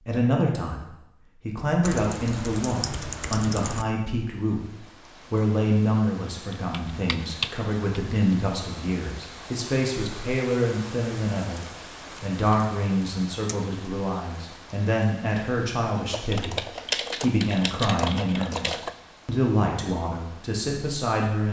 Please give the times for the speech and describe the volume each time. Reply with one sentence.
You can hear the speech from 0.0 to 21.4 s, at a steady volume.